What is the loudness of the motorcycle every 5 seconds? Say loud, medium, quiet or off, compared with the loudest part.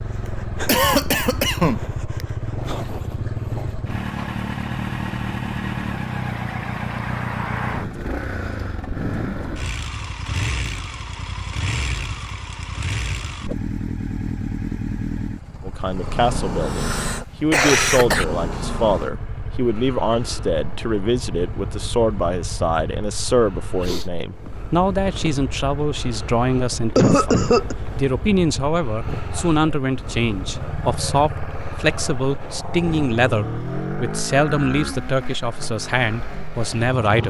loud, loud, loud, loud, medium, medium, loud, medium.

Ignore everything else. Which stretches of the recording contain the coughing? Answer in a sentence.
You can hear the coughing from 0.7 to 2.2 s, from 16.6 to 18.2 s and from 26.9 to 27.8 s.